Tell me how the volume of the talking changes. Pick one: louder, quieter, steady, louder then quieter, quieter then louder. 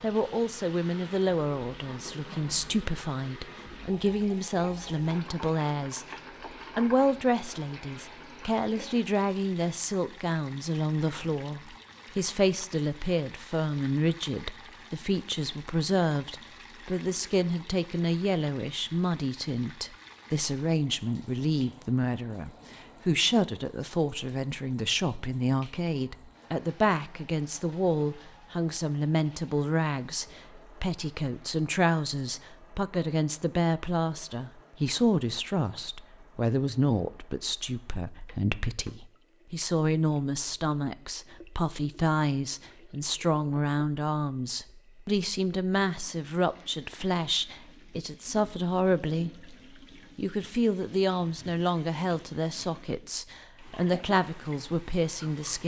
steady.